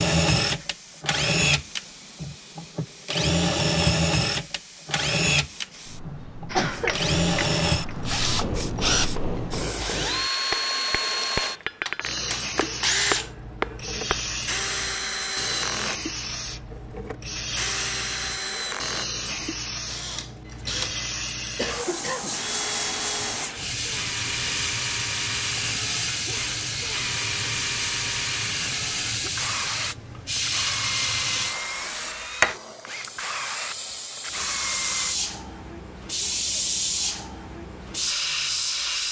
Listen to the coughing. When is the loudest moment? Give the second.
7 s.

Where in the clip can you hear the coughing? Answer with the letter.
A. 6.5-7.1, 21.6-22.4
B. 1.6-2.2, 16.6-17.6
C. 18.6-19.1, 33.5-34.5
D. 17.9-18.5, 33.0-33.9
A.